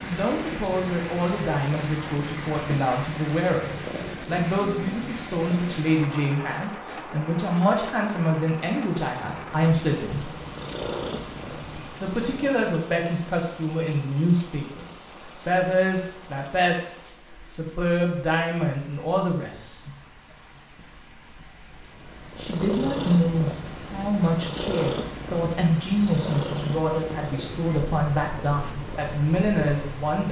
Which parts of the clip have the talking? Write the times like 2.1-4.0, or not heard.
0.0-10.3, 12.0-19.9, 22.4-30.2.